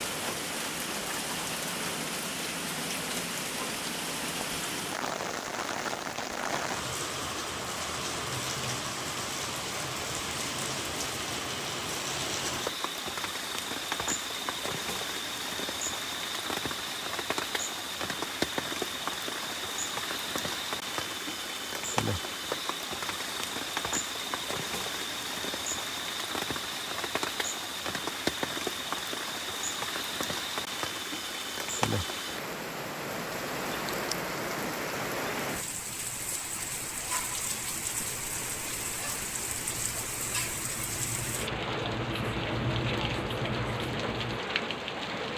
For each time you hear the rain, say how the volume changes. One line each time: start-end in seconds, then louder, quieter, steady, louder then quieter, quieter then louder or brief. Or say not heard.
0.0-45.3 steady.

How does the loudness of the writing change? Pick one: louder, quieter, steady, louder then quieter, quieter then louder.
louder.